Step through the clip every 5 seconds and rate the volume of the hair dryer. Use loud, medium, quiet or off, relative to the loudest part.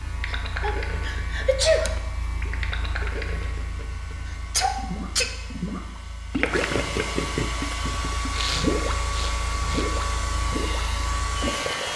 quiet, loud, loud.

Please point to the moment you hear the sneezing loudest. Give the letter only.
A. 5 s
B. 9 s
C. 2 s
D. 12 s
C.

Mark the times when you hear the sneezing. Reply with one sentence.
The sneezing can be heard from 0.2 to 2.0 s, from 4.2 to 5.3 s and from 8.3 to 9.8 s.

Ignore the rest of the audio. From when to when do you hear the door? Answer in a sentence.
You can't hear the door here.